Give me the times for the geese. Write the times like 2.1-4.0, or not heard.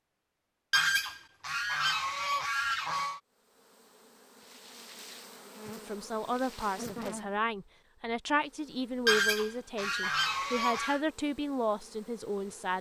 0.7-3.2, 9.1-11.0.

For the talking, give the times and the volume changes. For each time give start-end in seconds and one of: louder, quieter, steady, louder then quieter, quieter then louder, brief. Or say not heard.
5.8-12.7 steady.